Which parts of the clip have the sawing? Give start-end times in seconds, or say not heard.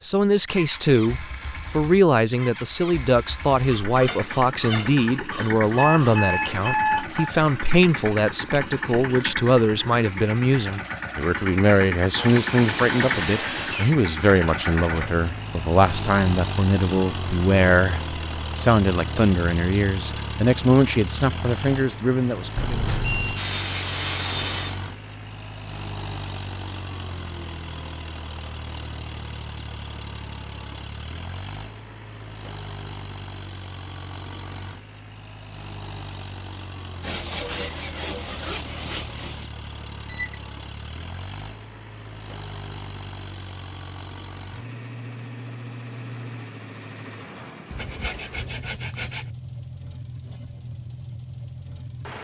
3.6-6.2, 12.2-13.9, 22.9-24.8, 37.0-39.5, 47.7-49.3.